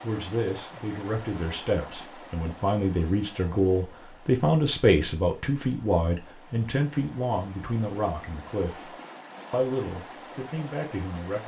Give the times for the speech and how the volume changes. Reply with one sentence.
You can hear the speech from 0.0 to 8.9 s, getting louder then quieter; and briefly from 9.5 to 11.4 s.